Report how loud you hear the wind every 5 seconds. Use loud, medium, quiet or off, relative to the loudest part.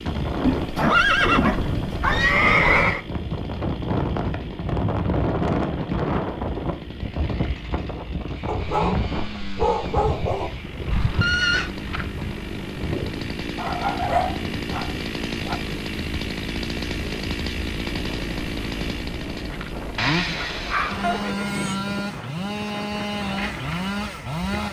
loud, loud, medium, medium, medium.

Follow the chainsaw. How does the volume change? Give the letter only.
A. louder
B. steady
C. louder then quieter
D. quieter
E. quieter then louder
A.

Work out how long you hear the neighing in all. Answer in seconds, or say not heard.
4 s.